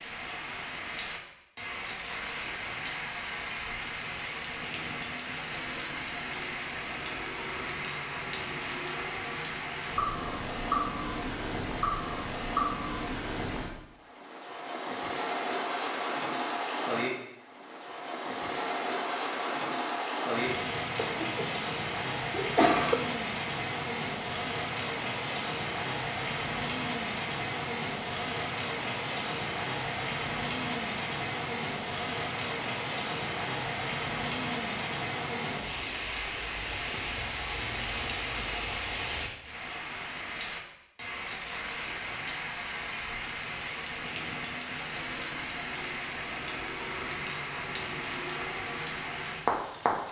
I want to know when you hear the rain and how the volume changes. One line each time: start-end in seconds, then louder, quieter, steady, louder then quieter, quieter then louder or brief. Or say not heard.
0.0-50.0 steady.